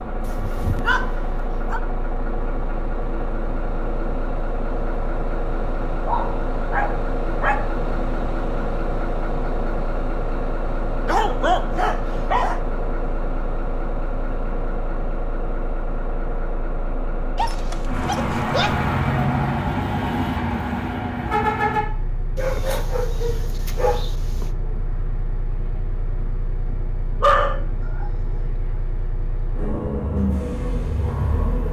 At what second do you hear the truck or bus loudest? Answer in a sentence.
The volume of the truck or bus peaks at 19 seconds.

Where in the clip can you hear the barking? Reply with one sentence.
You can hear the barking from 0.2 to 1.8 s, from 5.8 to 7.8 s, from 11.1 to 12.6 s, from 17.4 to 18.9 s, from 22.4 to 24.5 s and from 27.2 to 28.5 s.